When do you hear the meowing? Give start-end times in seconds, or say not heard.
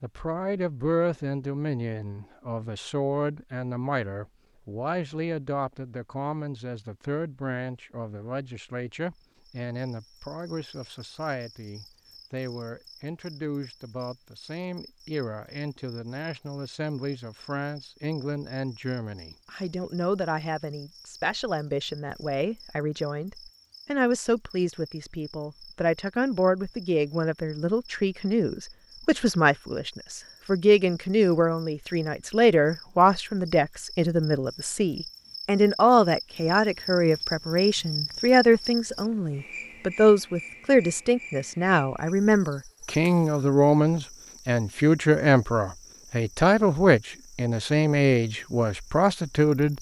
not heard.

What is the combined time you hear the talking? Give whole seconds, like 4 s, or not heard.
50 s.